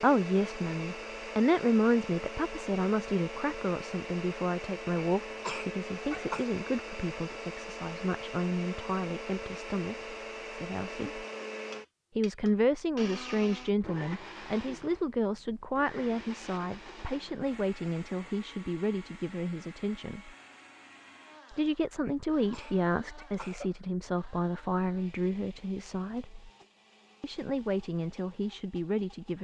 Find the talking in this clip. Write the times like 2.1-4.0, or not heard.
0.0-11.2, 12.2-20.3, 21.5-26.5, 27.2-29.4.